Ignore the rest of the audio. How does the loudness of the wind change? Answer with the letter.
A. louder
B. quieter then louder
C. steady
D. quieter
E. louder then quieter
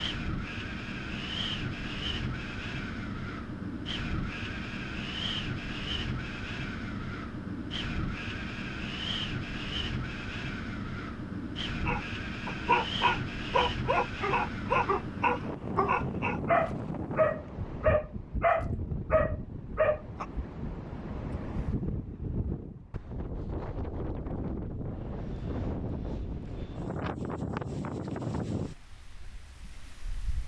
C.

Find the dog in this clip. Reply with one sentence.
The dog can be heard from 11.8 to 20.2 s.